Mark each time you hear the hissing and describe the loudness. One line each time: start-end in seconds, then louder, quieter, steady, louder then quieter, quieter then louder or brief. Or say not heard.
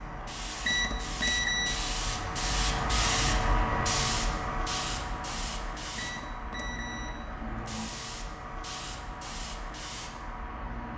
0.0-10.9 louder then quieter.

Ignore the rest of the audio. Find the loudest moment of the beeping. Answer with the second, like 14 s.
1 s.